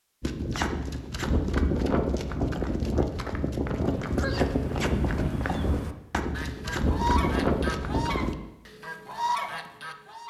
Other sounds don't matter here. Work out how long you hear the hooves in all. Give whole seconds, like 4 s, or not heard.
8 s.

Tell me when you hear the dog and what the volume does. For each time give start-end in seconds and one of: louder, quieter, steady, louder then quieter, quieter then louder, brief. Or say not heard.
not heard.